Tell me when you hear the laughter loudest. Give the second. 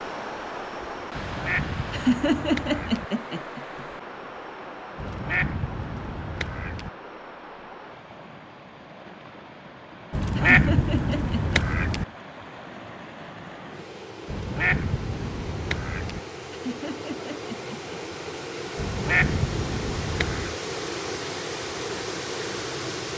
2 s.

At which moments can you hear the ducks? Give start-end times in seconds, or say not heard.
1.1-3.0, 5.0-6.9, 10.1-12.1, 14.2-16.2, 18.8-20.6.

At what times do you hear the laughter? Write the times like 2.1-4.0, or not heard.
1.9-3.9, 10.3-11.3, 16.5-18.4.